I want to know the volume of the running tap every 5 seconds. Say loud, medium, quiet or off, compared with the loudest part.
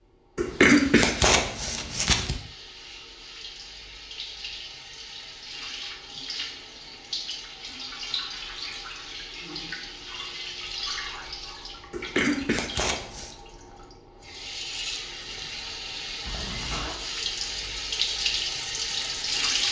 quiet, medium, medium, loud.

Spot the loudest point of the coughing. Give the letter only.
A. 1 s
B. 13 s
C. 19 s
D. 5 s
A.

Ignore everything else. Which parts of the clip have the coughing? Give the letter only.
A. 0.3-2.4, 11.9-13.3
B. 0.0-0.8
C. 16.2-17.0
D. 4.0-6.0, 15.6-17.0
A.